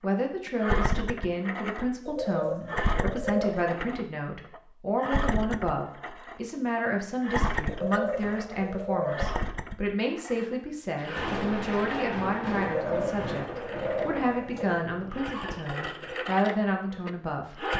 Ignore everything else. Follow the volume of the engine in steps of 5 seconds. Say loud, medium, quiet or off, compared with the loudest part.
loud, loud, medium, loud.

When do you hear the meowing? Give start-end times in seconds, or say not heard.
not heard.